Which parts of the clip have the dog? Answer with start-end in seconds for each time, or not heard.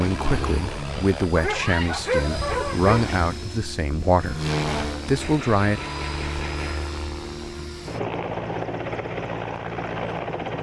1.4-3.2.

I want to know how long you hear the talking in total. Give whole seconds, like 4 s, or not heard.
6 s.